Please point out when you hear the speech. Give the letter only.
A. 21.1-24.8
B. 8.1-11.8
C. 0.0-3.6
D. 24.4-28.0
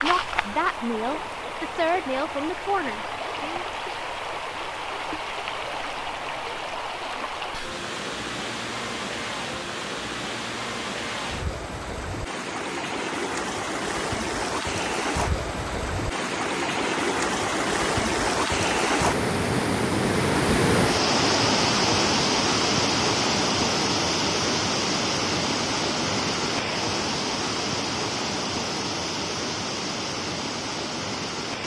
C.